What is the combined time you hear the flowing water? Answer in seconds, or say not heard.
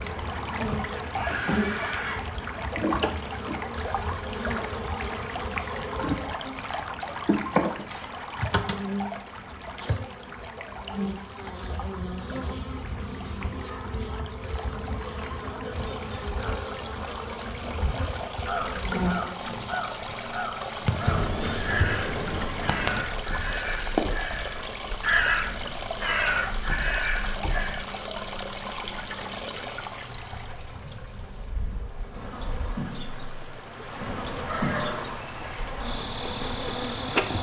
37 s.